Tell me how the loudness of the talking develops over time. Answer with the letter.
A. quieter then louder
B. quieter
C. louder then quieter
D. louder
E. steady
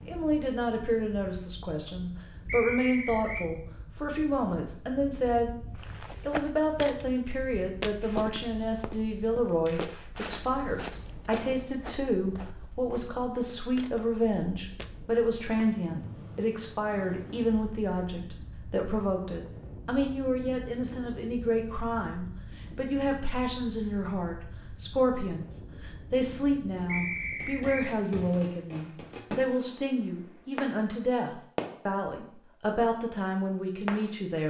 E.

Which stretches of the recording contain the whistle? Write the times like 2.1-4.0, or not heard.
2.5-3.5, 26.9-27.9.